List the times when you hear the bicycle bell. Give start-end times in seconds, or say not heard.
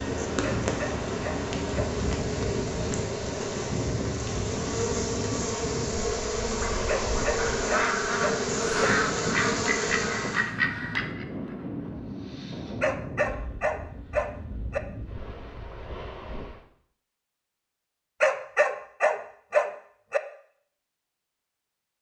not heard.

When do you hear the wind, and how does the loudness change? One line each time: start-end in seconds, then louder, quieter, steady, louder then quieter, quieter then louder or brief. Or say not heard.
0.0-16.6 quieter.